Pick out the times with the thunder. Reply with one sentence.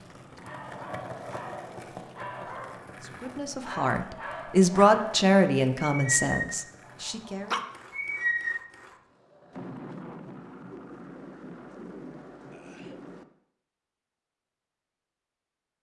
You can hear the thunder from 9.5 to 13.2 s.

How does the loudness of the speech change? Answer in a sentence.
The loudness of the speech goes up, then down.